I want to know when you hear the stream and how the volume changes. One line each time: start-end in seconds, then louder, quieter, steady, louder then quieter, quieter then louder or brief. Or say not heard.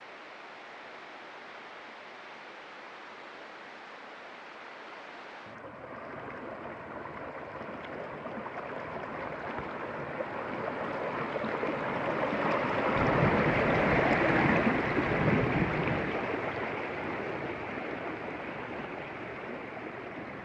0.0-20.4 louder then quieter.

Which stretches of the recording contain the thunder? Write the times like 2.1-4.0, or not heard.
12.9-16.1.